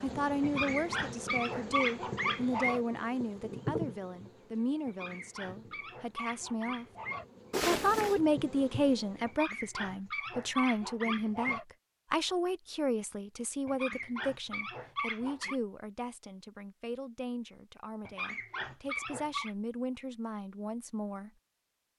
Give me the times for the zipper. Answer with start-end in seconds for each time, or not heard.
7.5-8.2.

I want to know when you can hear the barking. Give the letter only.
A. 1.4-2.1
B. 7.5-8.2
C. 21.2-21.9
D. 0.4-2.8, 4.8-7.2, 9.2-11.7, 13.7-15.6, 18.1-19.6
D.